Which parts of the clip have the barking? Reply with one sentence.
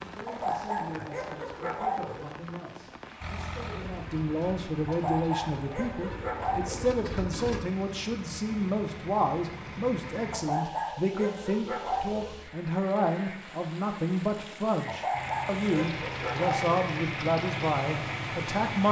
The barking can be heard from 0.2 to 2.2 s, from 4.8 to 6.9 s, from 10.3 to 12.3 s and from 14.8 to 16.7 s.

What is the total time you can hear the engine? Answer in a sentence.
You can hear the engine for 11 seconds altogether.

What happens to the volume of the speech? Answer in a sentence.
The loudness of the speech goes up.